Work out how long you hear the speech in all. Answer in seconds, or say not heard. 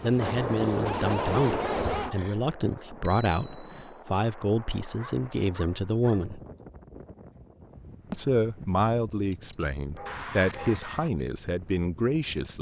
11 s.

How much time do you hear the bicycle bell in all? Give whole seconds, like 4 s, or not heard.
2 s.